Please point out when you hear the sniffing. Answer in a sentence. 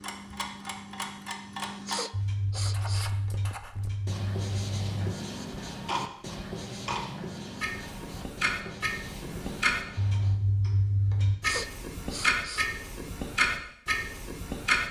The sniffing can be heard from 1.9 to 3.5 s and from 11.4 to 13.1 s.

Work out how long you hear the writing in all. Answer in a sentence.
You can hear the writing for 8 seconds altogether.